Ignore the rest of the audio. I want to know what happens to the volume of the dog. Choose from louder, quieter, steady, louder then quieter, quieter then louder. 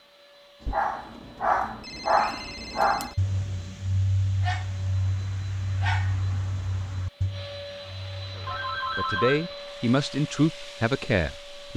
quieter.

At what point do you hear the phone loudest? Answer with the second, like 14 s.
9 s.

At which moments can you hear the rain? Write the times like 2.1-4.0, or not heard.
not heard.